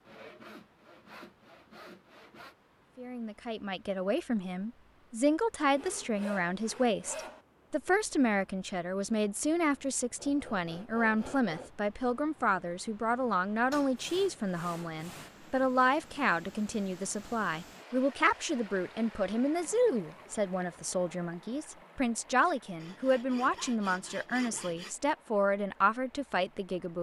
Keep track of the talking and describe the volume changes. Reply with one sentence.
The loudness of the talking stays about the same.